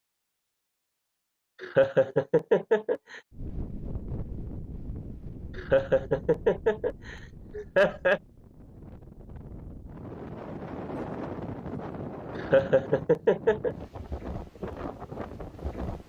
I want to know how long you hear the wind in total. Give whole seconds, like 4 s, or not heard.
13 s.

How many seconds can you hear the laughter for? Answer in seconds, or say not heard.
6 s.